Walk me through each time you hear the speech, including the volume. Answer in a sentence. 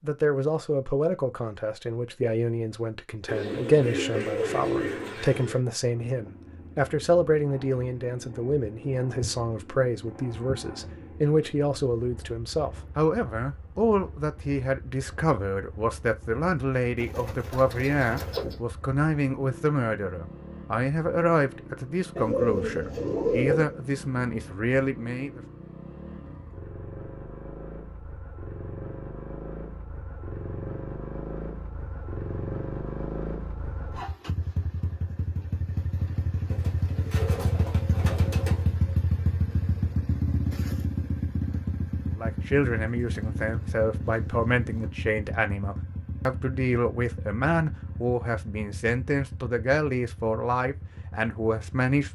The speech can be heard from 0.0 to 25.4 s, at a steady volume; and from 42.1 to 52.1 s, at a steady volume.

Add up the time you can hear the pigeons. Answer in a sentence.
The pigeons can be heard for 10 seconds in total.